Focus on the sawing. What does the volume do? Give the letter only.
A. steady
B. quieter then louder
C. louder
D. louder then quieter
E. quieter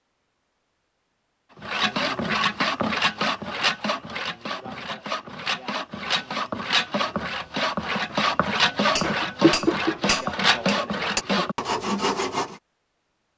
B.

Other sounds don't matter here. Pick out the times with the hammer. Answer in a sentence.
The hammer can be heard from 8.9 to 11.2 s.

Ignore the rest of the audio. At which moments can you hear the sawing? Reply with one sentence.
You can hear the sawing from 1.6 to 12.6 s.